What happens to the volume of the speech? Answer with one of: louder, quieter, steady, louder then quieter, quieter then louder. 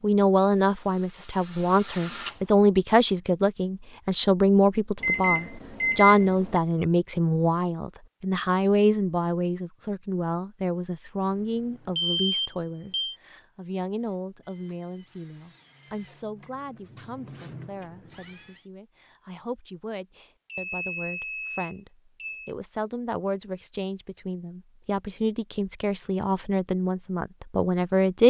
quieter then louder.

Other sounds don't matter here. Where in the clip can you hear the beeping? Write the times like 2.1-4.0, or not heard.
5.0-6.6, 11.6-13.2, 20.5-22.5.